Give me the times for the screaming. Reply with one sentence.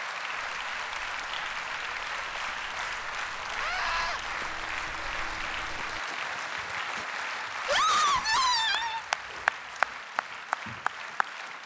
You can hear the screaming from 3.5 to 4.2 s and from 7.7 to 9.1 s.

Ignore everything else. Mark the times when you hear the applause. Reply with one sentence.
The applause can be heard from 0.0 to 11.6 s.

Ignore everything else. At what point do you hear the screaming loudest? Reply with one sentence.
The volume of the screaming peaks at 8 seconds.